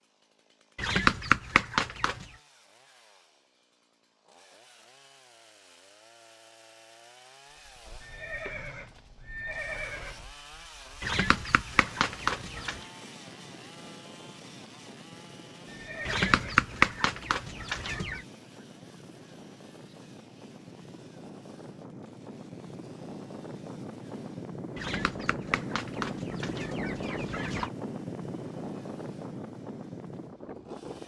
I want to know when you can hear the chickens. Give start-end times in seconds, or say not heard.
0.8-2.2, 11.0-12.8, 16.1-18.2, 24.8-27.7.